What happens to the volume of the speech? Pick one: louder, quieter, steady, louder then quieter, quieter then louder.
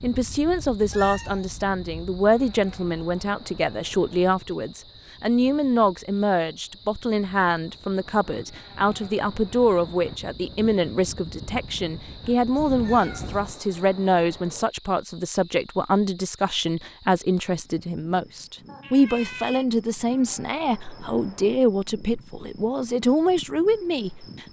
steady.